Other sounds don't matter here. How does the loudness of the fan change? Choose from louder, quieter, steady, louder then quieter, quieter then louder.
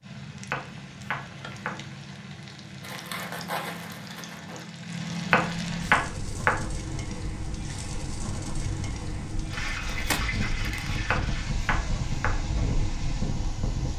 louder.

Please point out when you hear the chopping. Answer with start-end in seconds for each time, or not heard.
0.5-1.8, 5.3-6.6, 11.1-12.3.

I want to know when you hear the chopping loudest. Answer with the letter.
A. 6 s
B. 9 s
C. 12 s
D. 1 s
A.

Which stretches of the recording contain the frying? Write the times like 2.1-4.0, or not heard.
0.0-13.9.